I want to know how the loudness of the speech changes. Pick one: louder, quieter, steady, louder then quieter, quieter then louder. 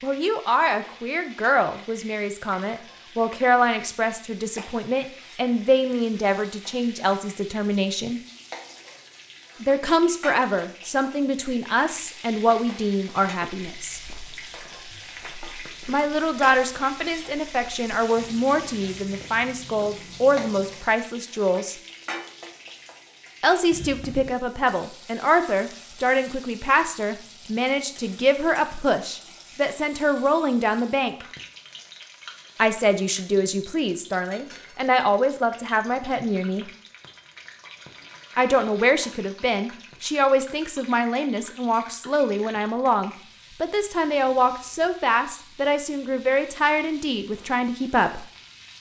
steady.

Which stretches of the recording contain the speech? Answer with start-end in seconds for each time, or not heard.
0.0-8.2, 9.6-14.0, 15.8-21.8, 23.4-31.2, 32.5-36.7, 38.4-48.2.